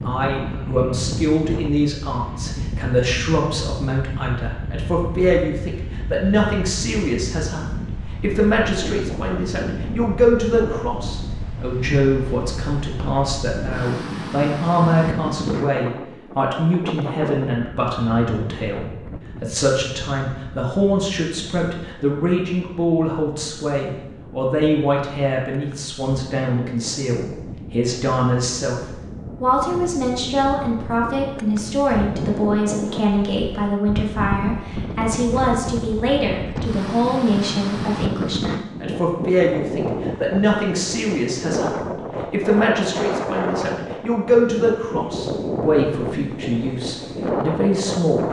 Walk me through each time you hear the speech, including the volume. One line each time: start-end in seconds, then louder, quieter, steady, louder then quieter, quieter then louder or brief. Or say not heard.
0.0-48.2 steady.